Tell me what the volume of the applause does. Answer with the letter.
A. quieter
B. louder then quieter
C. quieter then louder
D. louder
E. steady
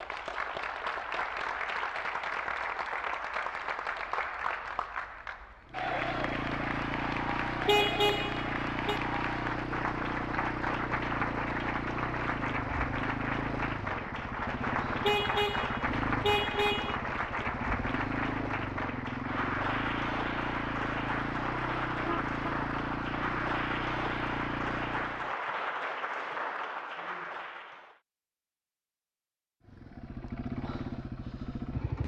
E.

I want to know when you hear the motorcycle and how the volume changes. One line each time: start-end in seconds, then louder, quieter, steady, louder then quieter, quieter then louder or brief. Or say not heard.
5.7-25.4 steady
29.6-32.0 brief.